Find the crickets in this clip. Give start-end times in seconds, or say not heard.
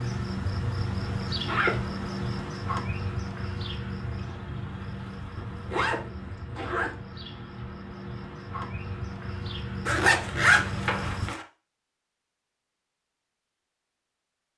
0.0-11.3.